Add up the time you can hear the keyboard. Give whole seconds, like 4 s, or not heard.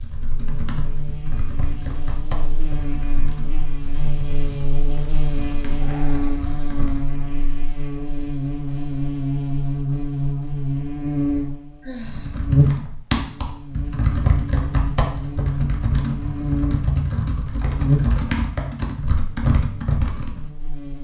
16 s.